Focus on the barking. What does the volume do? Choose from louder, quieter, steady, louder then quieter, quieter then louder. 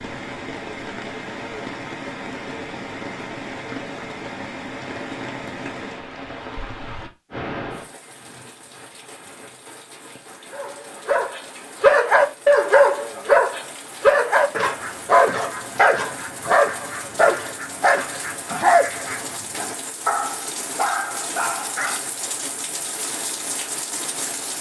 quieter.